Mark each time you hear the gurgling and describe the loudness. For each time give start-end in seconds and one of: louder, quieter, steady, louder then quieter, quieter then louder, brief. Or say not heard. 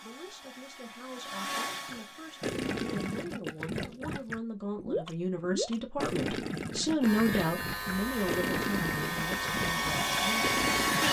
1.7-11.0 steady.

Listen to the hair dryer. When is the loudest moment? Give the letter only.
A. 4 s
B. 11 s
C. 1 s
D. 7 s
B.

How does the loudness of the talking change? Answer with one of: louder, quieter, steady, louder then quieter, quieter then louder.
louder then quieter.